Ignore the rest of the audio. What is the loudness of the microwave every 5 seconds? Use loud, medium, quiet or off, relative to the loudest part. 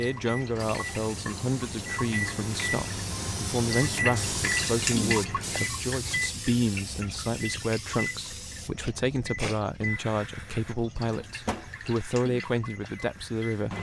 loud, loud, medium.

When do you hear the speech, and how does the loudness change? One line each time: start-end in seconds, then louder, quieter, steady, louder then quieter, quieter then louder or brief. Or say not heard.
0.0-13.7 steady.